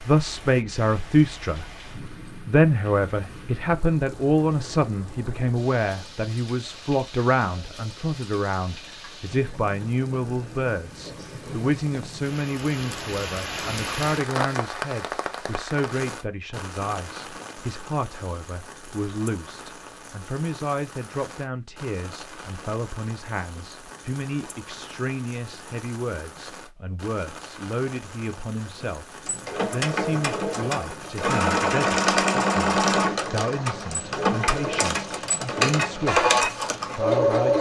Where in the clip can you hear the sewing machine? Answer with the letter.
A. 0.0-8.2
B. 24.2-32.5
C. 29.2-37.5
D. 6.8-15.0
C.